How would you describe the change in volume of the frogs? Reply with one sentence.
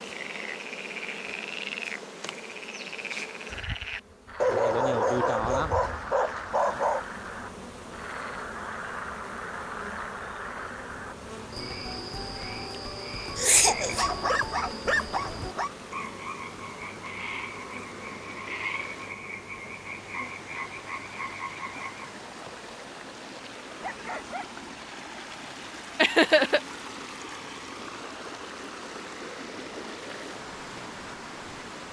The volume of the frogs stays about the same.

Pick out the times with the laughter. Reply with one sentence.
The laughter can be heard from 13.3 to 14.2 s and from 25.9 to 26.6 s.